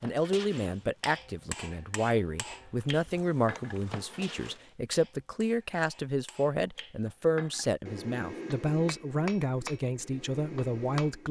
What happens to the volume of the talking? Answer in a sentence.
The volume of the talking stays about the same.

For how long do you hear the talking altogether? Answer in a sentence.
The talking can be heard for 11 seconds in total.